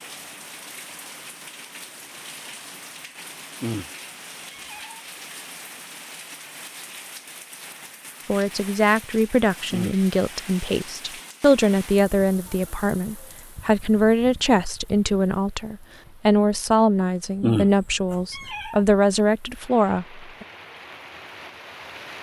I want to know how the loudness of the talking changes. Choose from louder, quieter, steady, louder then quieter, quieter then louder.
steady.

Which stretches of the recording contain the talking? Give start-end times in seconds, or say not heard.
8.2-20.4.